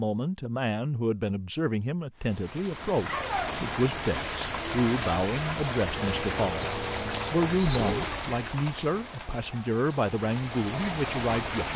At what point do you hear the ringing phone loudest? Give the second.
6 s.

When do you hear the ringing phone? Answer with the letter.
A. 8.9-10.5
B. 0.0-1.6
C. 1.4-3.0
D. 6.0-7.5
D.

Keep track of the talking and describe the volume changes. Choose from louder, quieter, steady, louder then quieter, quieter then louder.
steady.